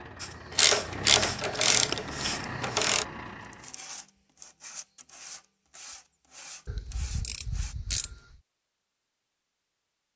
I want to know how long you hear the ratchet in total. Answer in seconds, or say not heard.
4 s.